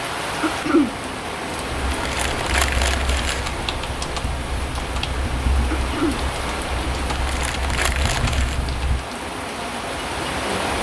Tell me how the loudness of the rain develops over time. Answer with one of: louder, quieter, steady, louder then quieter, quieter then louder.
steady.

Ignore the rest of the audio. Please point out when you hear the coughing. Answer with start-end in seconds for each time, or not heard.
0.4-0.9, 5.8-6.2.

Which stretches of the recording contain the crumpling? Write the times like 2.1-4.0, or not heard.
1.9-3.5, 7.2-8.6.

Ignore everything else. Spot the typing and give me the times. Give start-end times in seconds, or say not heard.
1.6-9.1.